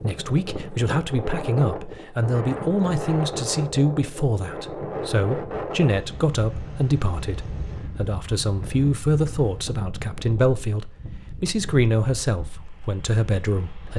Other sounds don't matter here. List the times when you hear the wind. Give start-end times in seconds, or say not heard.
0.0-13.9.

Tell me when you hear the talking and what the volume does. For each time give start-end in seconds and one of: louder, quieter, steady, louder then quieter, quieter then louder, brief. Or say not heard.
0.0-13.9 steady.